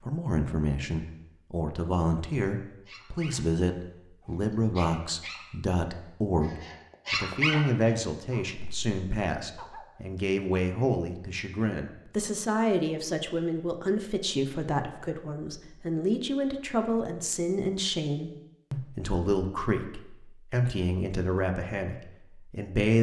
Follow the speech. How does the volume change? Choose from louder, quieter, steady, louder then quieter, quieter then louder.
steady.